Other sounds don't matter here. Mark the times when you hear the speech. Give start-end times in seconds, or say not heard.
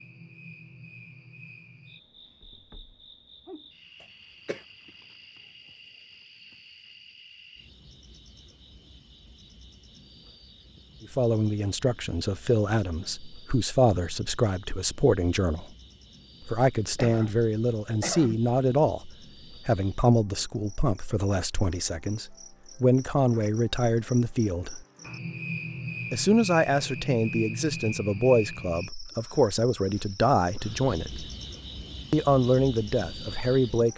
11.0-15.7, 16.4-24.8, 26.1-31.2, 32.1-33.9.